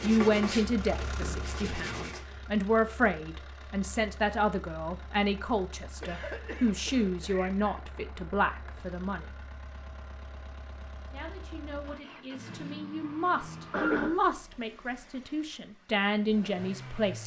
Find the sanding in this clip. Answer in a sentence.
The sanding can be heard from 0.0 to 2.2 s.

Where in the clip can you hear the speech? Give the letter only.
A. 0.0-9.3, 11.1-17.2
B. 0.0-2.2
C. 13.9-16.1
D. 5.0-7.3
A.